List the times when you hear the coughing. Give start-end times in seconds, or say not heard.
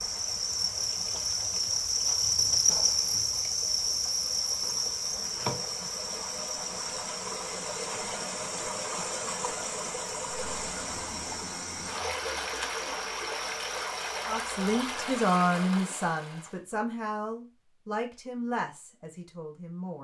not heard.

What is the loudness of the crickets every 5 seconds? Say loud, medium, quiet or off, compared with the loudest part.
loud, medium, quiet, off.